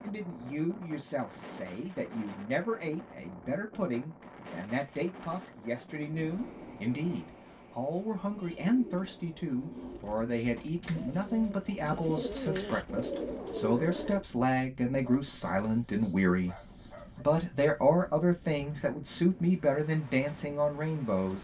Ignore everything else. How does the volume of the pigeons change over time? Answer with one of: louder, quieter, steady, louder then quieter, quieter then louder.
louder.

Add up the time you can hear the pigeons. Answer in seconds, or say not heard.
6 s.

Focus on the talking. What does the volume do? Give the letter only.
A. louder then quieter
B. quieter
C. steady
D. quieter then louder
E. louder
E.